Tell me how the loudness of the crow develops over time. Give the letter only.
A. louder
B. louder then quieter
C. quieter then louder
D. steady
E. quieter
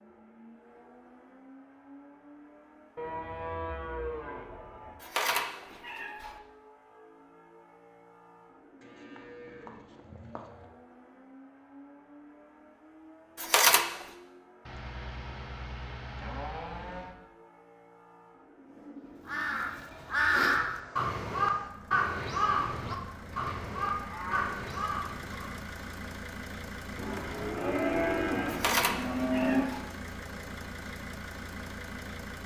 E.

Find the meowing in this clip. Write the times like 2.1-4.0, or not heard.
5.0-6.3, 13.3-13.8, 28.4-29.9.